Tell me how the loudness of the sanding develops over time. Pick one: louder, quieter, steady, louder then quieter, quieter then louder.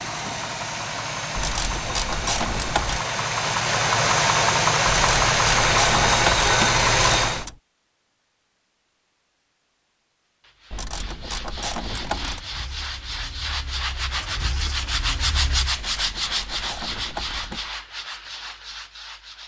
louder then quieter.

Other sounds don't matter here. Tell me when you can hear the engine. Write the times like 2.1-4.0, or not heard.
0.0-7.5, 11.8-15.8.